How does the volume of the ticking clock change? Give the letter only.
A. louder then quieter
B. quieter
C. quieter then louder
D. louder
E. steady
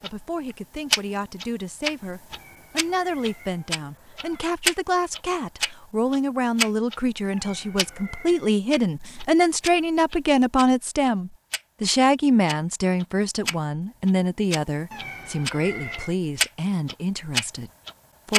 C.